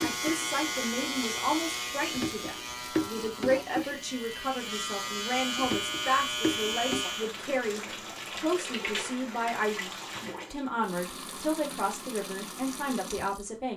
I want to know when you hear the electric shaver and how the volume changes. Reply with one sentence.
You can hear the electric shaver from 0.0 to 7.3 s, getting quieter then louder.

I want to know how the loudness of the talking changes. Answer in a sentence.
The loudness of the talking stays about the same.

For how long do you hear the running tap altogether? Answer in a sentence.
The running tap can be heard for 14 seconds in total.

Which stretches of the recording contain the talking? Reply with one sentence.
The talking can be heard from 0.0 to 13.7 s.